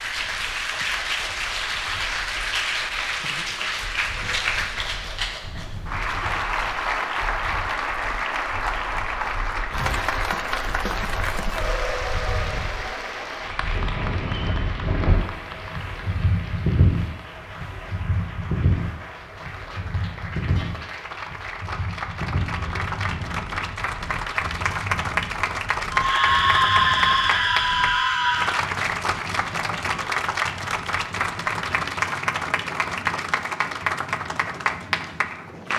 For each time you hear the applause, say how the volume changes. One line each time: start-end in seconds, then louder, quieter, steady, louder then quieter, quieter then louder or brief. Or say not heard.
0.0-35.7 quieter then louder.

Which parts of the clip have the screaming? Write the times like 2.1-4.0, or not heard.
25.9-28.6.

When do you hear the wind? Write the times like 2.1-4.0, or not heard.
0.0-35.7.